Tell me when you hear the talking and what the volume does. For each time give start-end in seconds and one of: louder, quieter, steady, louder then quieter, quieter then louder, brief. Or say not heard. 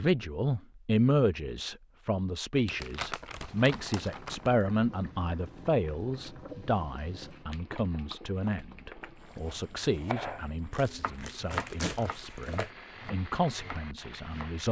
0.0-14.6 quieter.